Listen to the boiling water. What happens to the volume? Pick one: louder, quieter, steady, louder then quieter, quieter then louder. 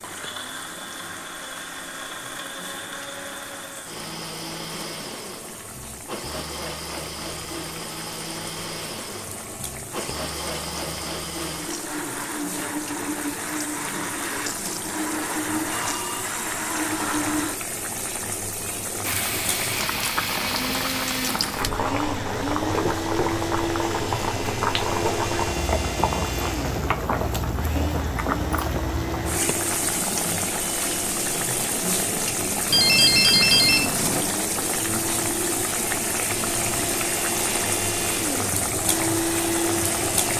louder.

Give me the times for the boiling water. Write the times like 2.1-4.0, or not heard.
0.0-40.3.